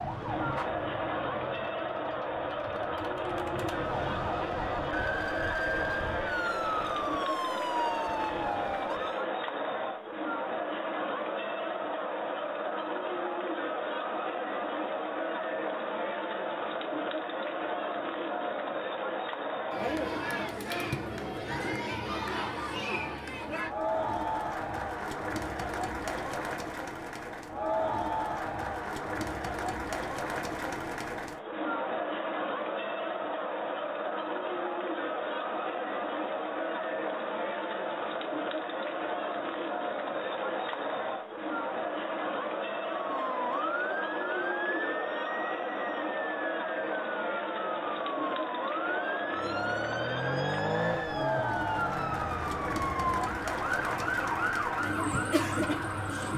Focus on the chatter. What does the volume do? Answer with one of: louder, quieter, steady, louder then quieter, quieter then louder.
steady.